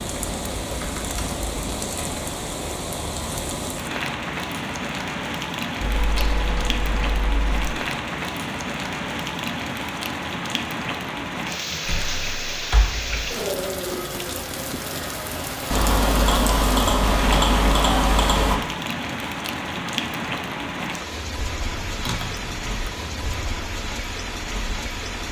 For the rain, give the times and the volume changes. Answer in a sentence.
The rain can be heard from 0.0 to 25.2 s, at a steady volume.